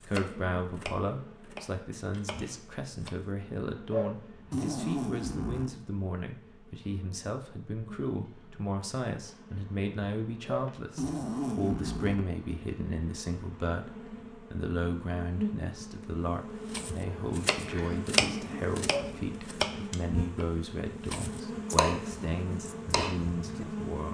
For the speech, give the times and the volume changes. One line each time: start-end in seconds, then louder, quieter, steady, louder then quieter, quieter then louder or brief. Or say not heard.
0.0-24.0 steady.